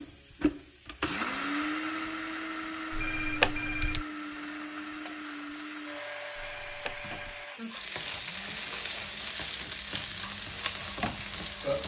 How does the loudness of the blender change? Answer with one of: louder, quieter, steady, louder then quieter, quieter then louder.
quieter.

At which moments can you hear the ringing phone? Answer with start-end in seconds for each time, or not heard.
2.9-4.0, 6.3-7.5.